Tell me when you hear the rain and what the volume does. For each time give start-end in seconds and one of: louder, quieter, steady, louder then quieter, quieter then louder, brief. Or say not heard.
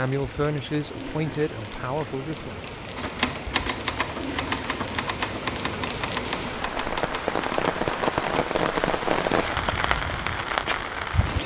0.0-11.4 louder.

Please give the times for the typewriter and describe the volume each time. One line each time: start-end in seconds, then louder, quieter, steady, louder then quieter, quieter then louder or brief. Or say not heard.
3.0-8.3 quieter.